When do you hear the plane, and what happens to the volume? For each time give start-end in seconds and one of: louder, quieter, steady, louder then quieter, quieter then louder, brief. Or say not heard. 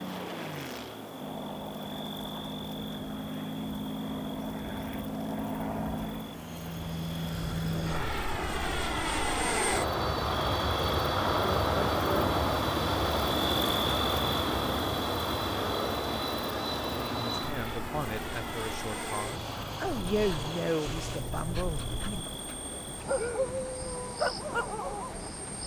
0.0-25.6 louder then quieter.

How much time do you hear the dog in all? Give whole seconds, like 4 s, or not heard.
5 s.